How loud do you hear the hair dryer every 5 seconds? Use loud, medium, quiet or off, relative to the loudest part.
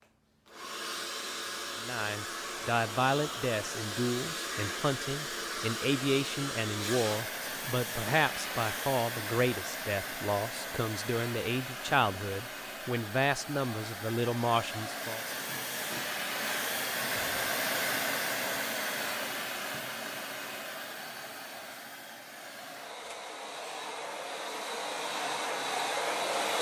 medium, medium, medium, loud, medium, loud.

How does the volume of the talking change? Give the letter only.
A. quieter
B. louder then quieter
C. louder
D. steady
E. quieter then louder
D.